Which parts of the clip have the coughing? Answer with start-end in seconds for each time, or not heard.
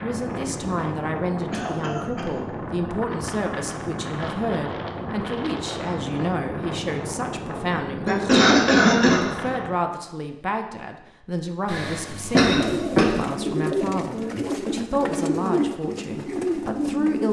1.5-2.3, 8.1-9.2, 11.7-13.2.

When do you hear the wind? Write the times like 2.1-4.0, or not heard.
0.0-9.8.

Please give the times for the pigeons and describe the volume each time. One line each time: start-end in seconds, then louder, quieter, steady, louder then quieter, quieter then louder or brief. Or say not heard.
12.4-17.2 steady.